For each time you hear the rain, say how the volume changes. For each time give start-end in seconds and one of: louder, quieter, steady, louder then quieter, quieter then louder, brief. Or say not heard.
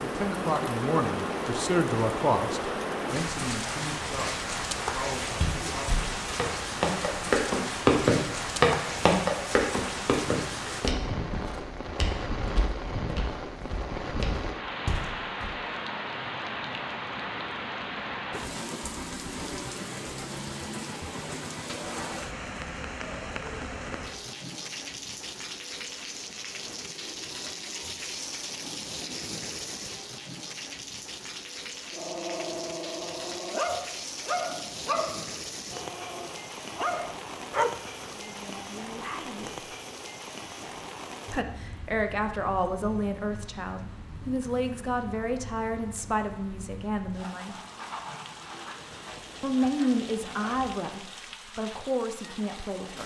0.0-53.0 quieter.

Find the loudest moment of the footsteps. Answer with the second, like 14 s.
8 s.